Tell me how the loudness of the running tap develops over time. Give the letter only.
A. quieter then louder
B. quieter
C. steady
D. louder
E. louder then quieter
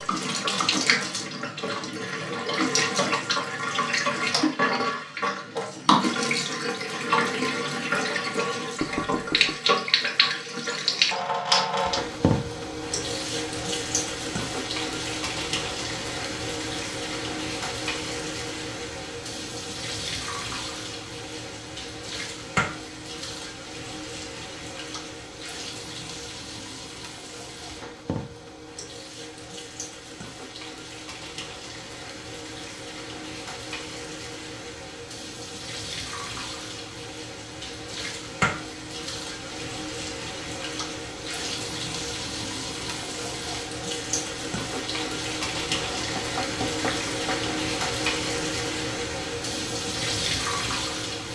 A.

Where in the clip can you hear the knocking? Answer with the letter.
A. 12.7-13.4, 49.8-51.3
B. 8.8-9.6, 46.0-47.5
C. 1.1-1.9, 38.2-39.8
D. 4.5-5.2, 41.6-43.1
B.